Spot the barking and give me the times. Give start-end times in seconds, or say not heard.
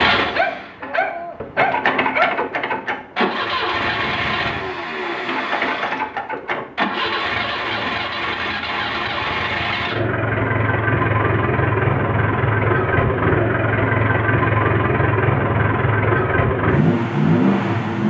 0.3-2.3.